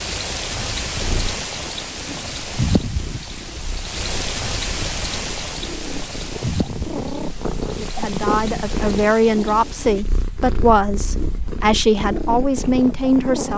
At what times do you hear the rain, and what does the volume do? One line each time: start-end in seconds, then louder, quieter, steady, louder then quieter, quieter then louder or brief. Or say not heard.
0.0-10.1 quieter.